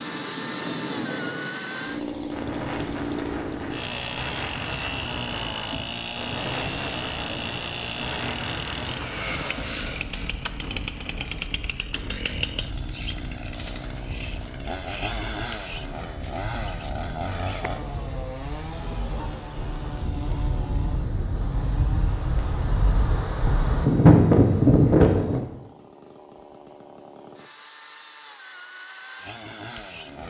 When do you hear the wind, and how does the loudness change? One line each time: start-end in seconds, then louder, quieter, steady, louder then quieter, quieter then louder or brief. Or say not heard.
0.0-25.4 quieter then louder.